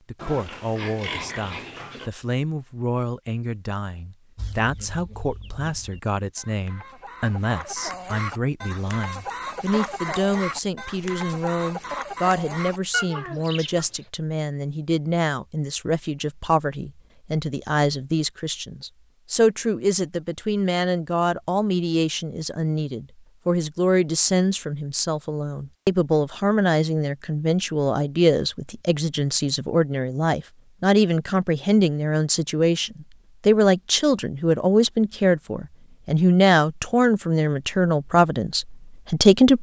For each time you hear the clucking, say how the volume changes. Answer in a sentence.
The clucking can be heard from 4.3 to 14.1 s, getting louder.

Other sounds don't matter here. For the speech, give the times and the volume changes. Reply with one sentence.
The speech can be heard from 0.1 to 39.5 s, getting louder.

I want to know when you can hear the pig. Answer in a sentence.
The pig can be heard from 0.1 to 2.1 s.